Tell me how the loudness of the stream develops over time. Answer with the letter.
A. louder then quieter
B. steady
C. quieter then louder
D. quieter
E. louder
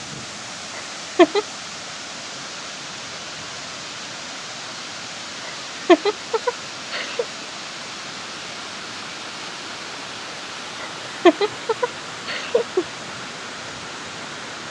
B.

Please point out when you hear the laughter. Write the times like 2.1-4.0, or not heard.
0.8-1.4, 5.5-7.2, 10.8-12.8.